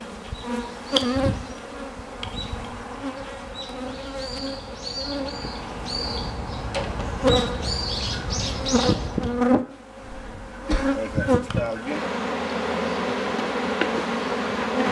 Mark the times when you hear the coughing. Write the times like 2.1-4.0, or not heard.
10.1-10.9.